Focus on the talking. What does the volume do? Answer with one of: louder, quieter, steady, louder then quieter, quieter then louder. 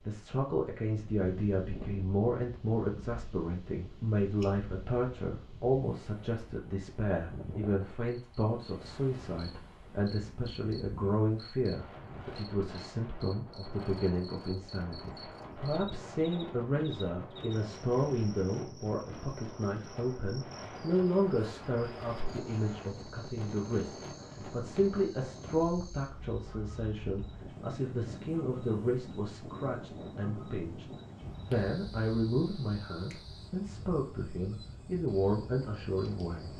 steady.